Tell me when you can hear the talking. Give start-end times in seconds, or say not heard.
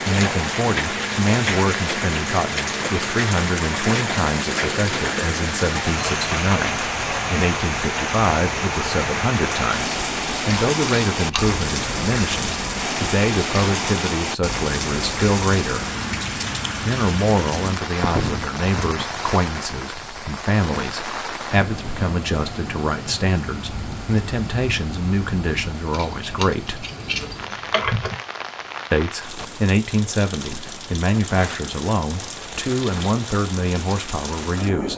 0.1-15.9, 16.8-26.9, 28.9-34.9.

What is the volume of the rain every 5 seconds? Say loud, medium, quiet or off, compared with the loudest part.
loud, loud, loud, loud, medium, medium, medium.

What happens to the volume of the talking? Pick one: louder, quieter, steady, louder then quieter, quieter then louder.
steady.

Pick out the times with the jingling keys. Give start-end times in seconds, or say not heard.
11.1-11.6, 25.9-28.1.